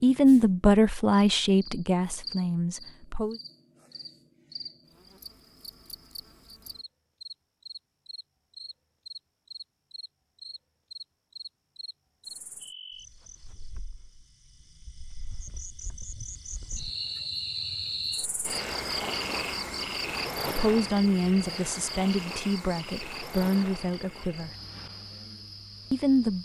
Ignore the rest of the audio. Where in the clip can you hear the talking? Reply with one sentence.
You can hear the talking from 0.0 to 3.4 s, from 20.4 to 24.5 s and from 25.9 to 26.4 s.